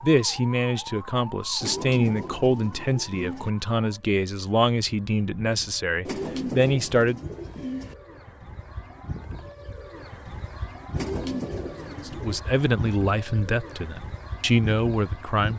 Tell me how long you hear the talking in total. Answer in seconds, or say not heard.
11 s.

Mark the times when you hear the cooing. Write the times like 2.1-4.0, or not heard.
1.6-3.5, 6.0-8.0, 10.9-12.4.